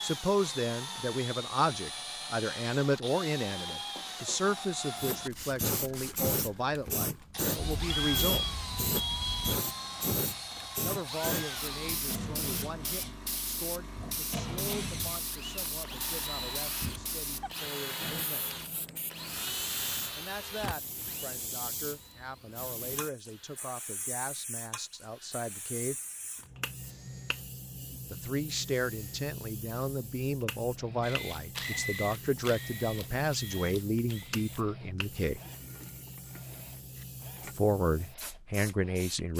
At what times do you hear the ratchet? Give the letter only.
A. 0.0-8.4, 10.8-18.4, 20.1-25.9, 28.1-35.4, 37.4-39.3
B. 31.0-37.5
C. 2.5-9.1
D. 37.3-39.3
B.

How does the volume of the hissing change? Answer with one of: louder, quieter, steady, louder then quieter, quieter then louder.
quieter.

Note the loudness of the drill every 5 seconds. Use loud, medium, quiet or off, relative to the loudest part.
loud, loud, loud, loud, medium, quiet, quiet, quiet.